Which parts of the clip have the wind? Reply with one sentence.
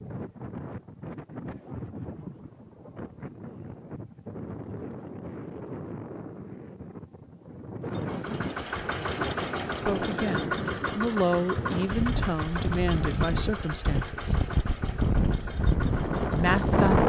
You can hear the wind from 0.0 to 17.0 s.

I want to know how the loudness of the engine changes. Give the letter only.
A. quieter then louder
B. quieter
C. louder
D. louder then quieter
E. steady
B.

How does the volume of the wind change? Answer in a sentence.
The loudness of the wind goes up.